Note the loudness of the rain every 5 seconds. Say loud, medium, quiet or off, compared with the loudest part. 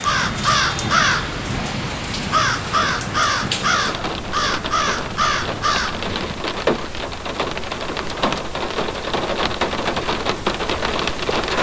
medium, loud, loud.